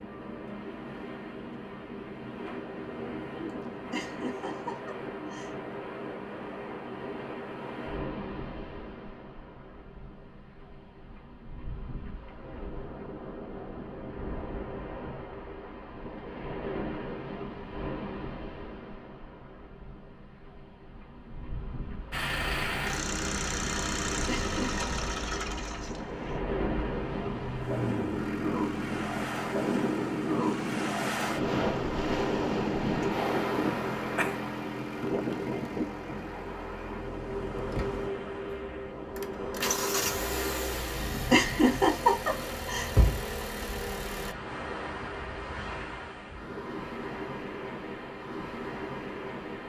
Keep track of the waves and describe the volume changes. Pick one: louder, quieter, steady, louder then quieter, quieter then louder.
louder then quieter.